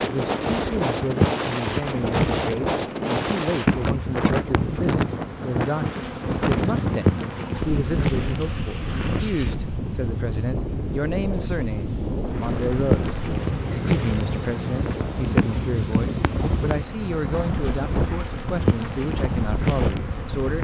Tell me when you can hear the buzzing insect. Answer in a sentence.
The buzzing insect can be heard from 0.0 to 9.6 s and from 12.3 to 20.5 s.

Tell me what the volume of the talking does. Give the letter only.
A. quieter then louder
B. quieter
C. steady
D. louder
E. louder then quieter
C.